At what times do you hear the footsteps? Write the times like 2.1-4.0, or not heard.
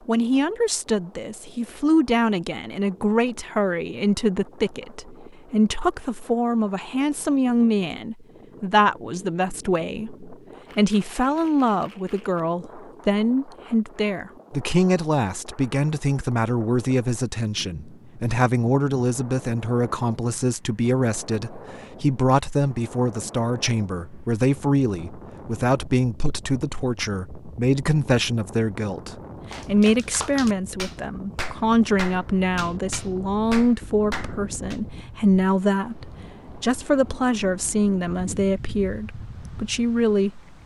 not heard.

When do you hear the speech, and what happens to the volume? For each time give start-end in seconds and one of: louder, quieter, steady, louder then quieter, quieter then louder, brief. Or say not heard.
0.1-40.6 steady.